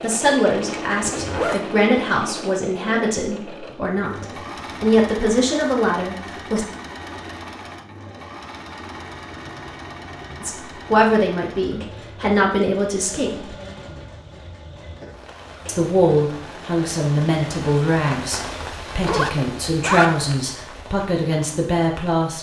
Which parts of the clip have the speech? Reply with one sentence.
The speech can be heard from 0.0 to 6.7 s, from 10.4 to 13.6 s and from 15.7 to 22.3 s.